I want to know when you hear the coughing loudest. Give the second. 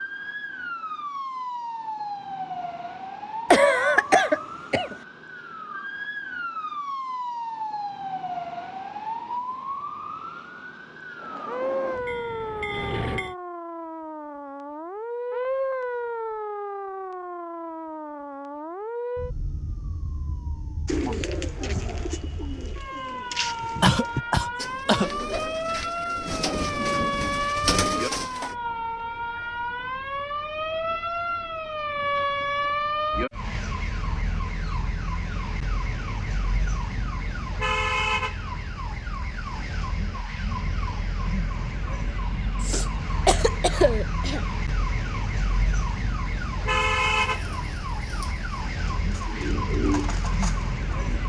4 s.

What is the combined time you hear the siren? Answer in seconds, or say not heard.
51 s.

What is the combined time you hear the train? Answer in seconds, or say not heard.
2 s.